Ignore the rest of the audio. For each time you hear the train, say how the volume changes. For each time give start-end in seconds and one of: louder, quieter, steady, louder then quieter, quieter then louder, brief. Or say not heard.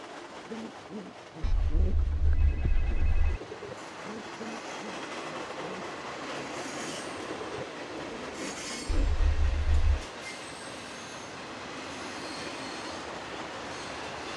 0.0-14.3 louder.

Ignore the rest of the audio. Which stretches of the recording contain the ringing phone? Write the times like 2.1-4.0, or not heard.
1.4-3.4, 8.8-10.1.